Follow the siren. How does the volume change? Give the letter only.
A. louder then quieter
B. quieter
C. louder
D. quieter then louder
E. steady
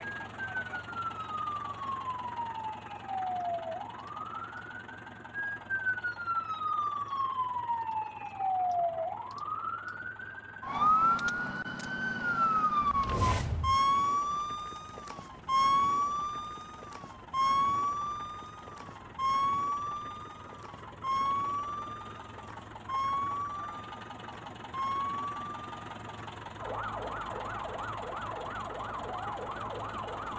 A.